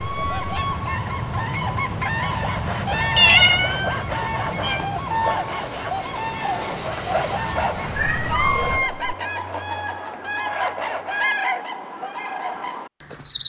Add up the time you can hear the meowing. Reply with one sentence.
The meowing can be heard for 3 seconds in total.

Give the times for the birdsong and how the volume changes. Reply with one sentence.
The birdsong can be heard from 0.0 to 13.4 s, at a steady volume.